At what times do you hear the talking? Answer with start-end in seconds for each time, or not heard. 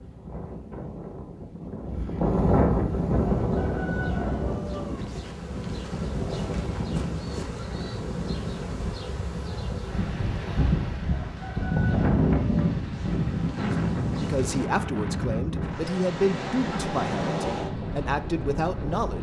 14.2-19.1.